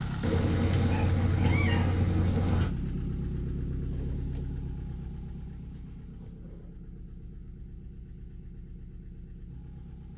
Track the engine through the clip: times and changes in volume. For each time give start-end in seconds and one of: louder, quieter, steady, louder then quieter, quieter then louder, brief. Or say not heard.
0.0-10.1 quieter.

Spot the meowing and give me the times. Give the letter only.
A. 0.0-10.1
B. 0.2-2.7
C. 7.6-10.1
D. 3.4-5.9
B.